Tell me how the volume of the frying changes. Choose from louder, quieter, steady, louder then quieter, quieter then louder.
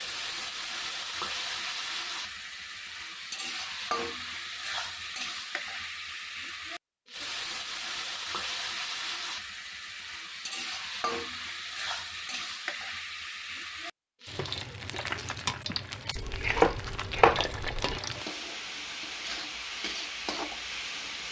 steady.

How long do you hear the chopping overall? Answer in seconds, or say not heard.
2 s.